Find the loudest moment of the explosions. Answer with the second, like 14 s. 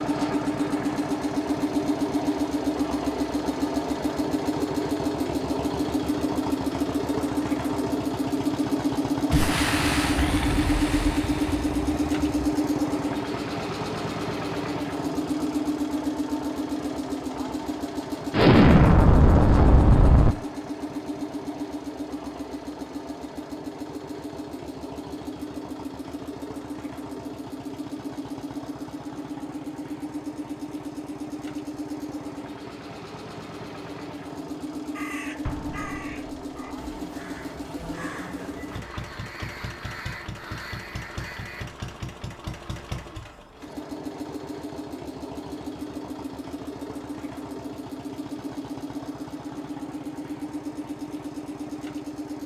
19 s.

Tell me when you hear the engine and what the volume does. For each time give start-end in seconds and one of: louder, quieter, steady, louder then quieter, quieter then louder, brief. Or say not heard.
0.0-52.4 quieter.